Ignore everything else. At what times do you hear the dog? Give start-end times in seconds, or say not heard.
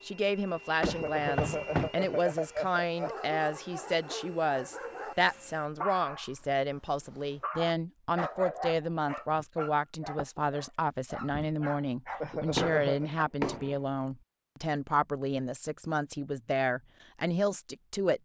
3.0-13.6.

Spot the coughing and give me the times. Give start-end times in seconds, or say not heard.
0.8-3.1, 12.2-13.1.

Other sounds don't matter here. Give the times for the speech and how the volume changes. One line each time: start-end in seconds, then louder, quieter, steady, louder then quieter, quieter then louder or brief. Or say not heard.
0.0-18.1 steady.